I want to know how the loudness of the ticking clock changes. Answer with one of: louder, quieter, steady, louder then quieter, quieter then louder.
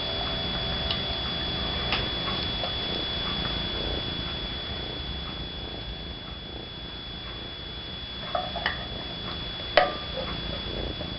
quieter then louder.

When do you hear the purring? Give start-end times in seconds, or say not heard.
0.0-11.1.